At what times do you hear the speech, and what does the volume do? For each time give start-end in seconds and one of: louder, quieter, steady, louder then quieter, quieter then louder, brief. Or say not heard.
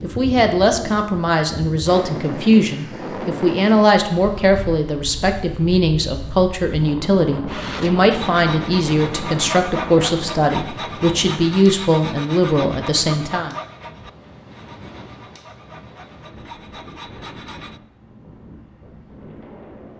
0.0-13.6 steady.